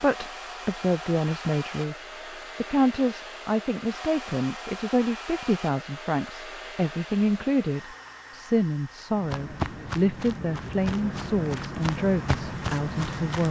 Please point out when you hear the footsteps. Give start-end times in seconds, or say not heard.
9.2-13.4.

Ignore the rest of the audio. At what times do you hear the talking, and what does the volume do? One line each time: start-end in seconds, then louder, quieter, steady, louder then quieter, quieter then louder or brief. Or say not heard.
0.0-1.9 brief
2.5-13.4 steady.